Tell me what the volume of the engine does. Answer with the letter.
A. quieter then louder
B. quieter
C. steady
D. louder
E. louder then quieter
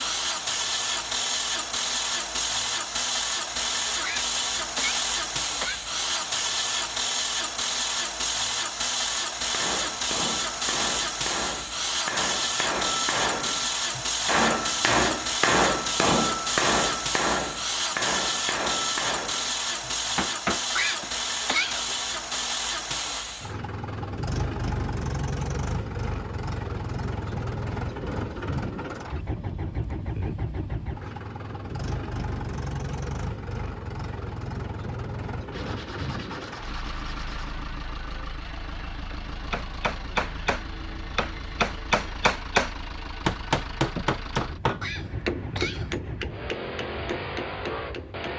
B.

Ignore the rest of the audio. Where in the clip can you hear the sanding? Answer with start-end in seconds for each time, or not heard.
35.5-37.5.